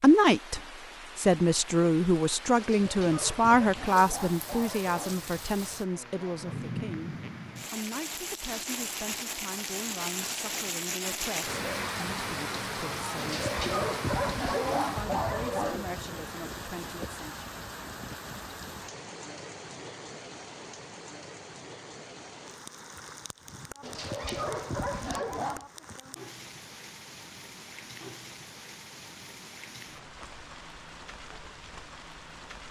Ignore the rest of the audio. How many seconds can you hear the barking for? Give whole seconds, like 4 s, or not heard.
7 s.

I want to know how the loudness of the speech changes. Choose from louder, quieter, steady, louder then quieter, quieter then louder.
quieter.